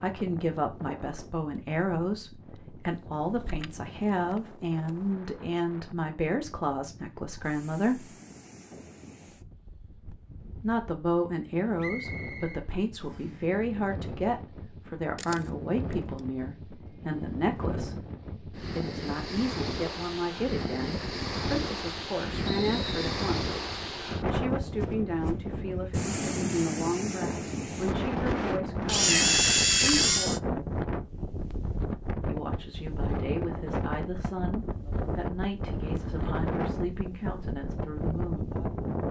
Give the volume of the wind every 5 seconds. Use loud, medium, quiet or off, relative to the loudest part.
quiet, quiet, quiet, medium, loud, loud, loud, loud.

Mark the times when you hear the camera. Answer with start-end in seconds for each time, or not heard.
3.2-5.2, 15.2-15.9, 28.9-30.4.